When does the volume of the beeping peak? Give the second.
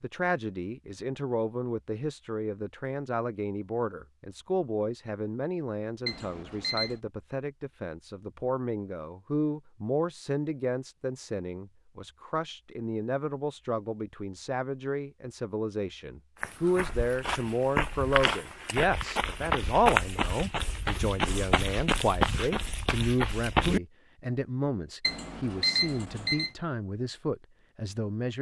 26 s.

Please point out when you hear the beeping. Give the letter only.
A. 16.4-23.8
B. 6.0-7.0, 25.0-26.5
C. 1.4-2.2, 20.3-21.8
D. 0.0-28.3
B.